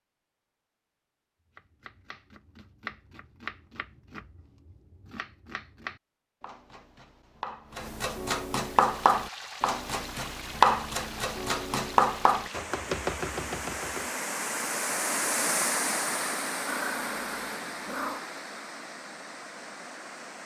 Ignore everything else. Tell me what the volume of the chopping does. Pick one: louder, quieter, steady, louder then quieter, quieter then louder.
louder.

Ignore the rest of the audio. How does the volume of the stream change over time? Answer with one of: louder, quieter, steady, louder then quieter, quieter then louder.
louder then quieter.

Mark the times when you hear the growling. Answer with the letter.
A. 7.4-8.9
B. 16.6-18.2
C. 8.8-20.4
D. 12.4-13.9
B.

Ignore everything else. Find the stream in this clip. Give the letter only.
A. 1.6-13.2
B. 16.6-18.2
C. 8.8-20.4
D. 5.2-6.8
C.